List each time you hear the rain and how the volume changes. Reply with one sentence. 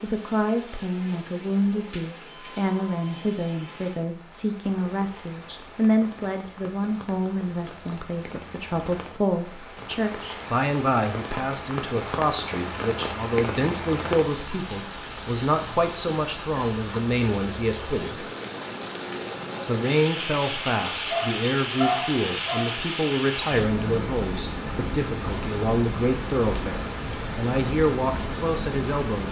You can hear the rain from 0.0 to 29.2 s, getting louder.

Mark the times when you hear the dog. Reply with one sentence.
You can hear the dog from 21.1 to 22.7 s.